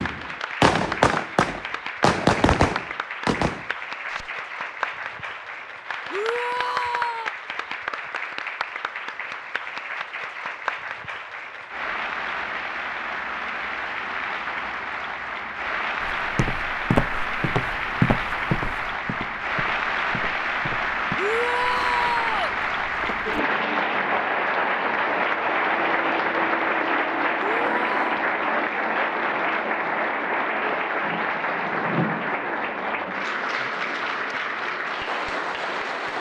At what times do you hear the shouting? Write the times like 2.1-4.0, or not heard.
6.1-7.3, 21.1-22.6, 27.4-28.2.